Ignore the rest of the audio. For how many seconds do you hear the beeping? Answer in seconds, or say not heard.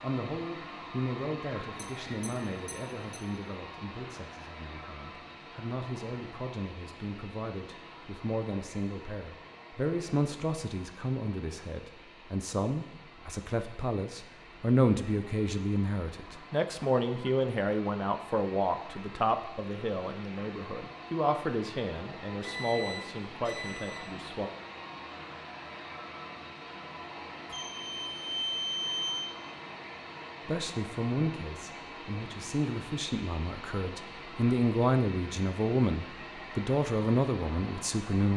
5 s.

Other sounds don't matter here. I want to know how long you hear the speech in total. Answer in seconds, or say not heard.
32 s.